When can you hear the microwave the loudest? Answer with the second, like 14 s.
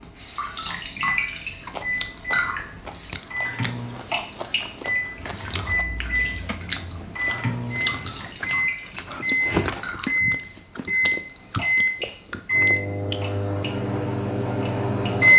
15 s.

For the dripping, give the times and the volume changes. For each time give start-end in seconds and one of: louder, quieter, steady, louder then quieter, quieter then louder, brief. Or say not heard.
0.0-15.3 quieter.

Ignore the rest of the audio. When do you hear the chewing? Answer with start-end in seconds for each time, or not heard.
1.6-13.3.